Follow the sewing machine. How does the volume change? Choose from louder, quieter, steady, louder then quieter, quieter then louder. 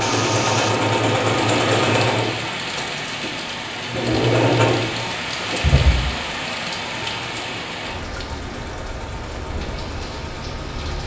quieter.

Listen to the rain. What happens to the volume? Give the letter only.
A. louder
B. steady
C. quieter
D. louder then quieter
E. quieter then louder
C.